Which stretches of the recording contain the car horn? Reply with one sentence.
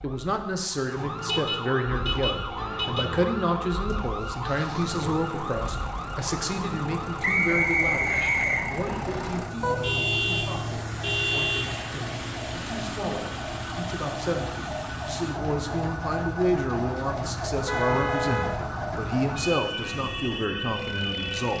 The car horn can be heard from 1.2 to 3.1 s, from 9.6 to 11.7 s and from 17.6 to 18.8 s.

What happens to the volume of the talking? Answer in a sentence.
The volume of the talking goes down, then up.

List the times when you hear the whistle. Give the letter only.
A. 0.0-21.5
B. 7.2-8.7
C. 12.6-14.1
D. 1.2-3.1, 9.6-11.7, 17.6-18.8
B.